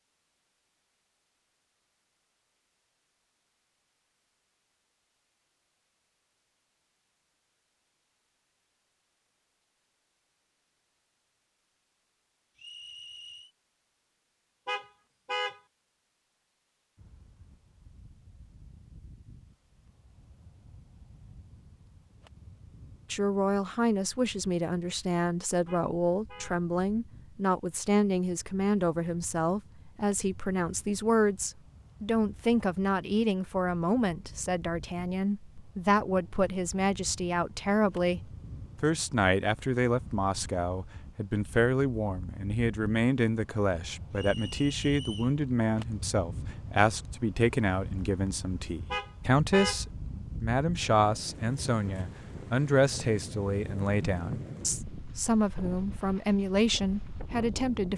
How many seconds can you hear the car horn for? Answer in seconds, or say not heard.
3 s.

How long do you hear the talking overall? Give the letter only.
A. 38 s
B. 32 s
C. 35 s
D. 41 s
C.